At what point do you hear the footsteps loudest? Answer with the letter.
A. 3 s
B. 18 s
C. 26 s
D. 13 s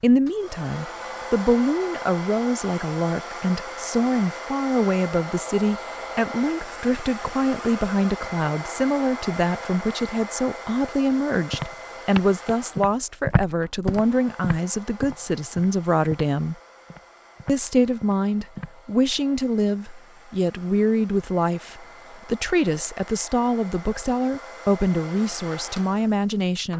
D.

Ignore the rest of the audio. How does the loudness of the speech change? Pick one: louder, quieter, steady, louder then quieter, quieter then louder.
steady.